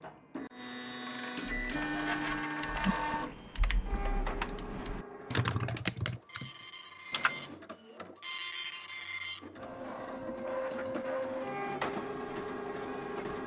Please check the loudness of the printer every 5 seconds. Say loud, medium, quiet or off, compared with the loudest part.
loud, medium, loud.